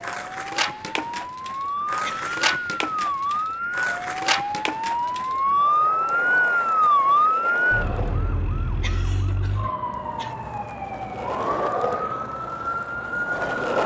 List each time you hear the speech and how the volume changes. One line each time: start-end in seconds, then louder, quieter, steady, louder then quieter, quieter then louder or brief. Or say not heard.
not heard.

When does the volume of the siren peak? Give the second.
7 s.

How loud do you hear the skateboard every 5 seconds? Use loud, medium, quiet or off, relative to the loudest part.
loud, medium, loud.